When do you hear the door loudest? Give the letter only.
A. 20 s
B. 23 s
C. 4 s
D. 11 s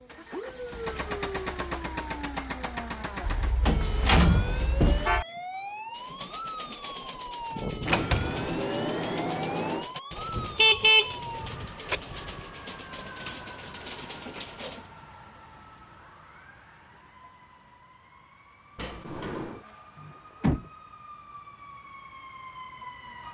C.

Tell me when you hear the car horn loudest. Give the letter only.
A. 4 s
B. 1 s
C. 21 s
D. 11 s
D.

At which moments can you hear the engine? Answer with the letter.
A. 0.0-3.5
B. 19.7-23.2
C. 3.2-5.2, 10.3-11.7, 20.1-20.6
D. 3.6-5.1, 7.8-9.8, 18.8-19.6
A.